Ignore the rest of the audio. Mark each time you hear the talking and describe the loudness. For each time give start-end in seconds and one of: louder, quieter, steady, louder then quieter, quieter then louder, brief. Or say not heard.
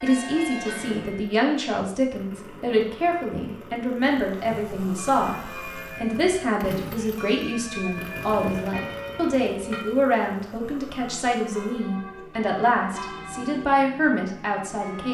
0.0-15.0 steady.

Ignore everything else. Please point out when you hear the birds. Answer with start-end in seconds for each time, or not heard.
not heard.